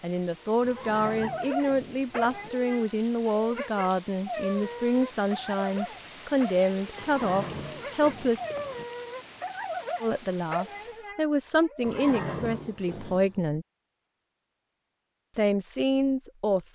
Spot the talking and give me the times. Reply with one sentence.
You can hear the talking from 0.0 to 8.4 s, from 10.0 to 13.7 s and from 15.3 to 16.7 s.